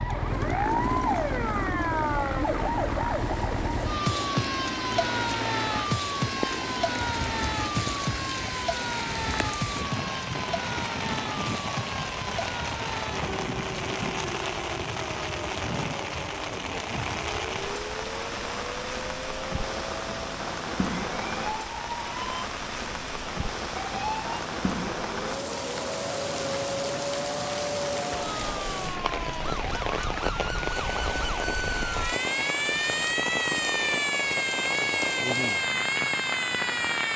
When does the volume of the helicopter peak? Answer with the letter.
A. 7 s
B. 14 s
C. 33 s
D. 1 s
D.